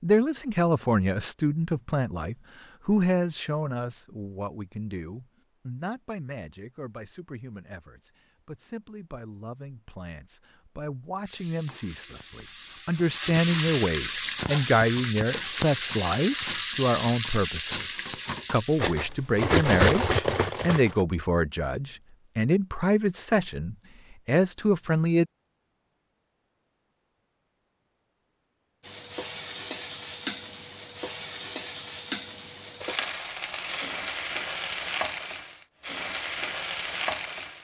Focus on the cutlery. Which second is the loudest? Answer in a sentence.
The volume of the cutlery peaks at 20 seconds.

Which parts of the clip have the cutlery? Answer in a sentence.
The cutlery can be heard from 14.1 to 21.1 s.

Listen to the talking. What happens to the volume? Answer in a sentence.
The loudness of the talking goes down, then up.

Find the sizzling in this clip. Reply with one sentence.
You can hear the sizzling from 11.2 to 18.9 s and from 28.8 to 37.5 s.